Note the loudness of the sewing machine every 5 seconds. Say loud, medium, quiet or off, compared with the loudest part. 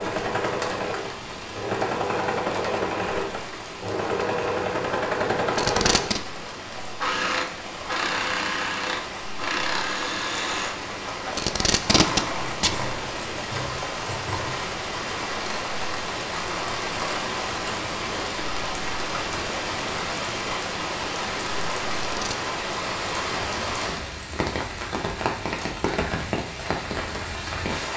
loud, loud, medium, off, off, off.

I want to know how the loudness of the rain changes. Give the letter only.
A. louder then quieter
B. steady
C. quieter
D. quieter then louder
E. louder
E.